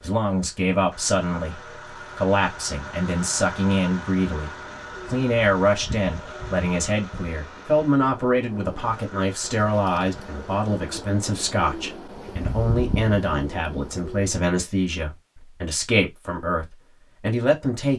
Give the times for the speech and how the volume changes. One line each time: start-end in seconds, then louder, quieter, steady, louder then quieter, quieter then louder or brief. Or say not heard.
0.0-17.9 steady.